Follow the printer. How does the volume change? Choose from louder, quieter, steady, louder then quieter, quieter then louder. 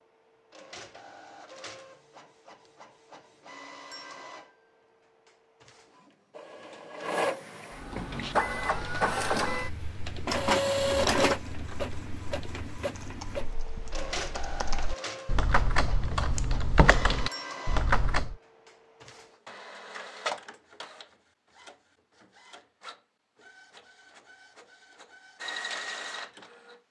louder then quieter.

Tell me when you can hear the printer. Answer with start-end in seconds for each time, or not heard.
0.0-26.8.